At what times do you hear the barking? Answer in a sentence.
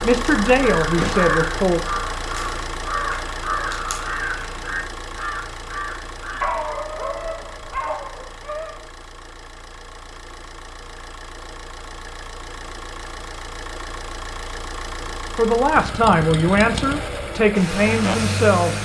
You can hear the barking from 6.4 to 8.8 s.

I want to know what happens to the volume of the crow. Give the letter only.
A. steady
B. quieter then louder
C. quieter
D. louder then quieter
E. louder
C.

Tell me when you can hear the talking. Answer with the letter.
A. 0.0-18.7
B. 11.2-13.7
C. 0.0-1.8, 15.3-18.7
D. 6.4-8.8
C.